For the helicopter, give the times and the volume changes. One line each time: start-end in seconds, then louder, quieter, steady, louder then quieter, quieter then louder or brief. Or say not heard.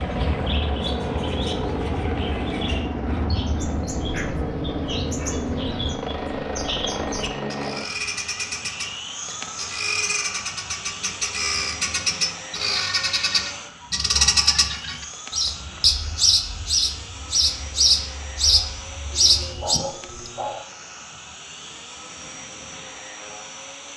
0.0-23.9 quieter.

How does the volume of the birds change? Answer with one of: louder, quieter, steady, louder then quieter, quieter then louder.
louder.